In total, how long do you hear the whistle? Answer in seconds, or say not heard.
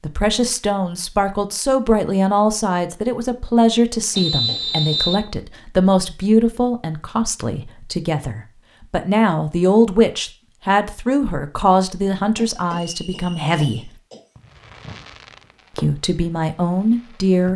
2 s.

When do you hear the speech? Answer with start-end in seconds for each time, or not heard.
0.0-13.9, 15.8-17.5.